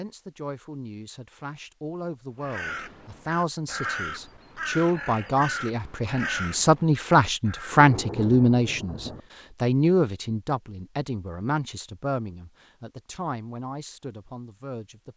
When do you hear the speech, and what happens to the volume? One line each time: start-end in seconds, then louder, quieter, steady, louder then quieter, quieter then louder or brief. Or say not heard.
0.0-15.1 louder then quieter.